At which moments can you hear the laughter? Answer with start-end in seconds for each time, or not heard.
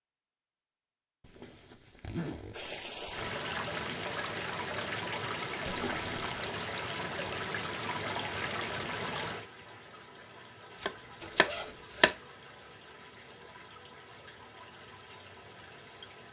not heard.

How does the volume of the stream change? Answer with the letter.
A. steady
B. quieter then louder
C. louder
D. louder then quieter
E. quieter
E.